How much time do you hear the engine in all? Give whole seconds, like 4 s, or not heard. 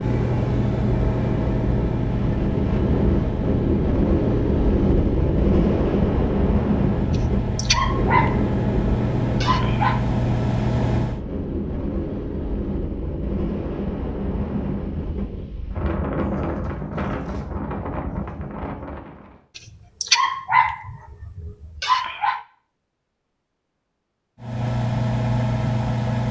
13 s.